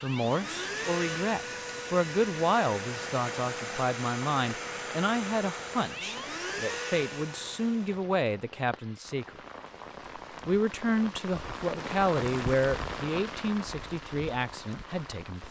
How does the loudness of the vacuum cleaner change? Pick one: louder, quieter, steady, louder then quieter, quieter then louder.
steady.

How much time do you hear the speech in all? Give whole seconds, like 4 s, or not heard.
14 s.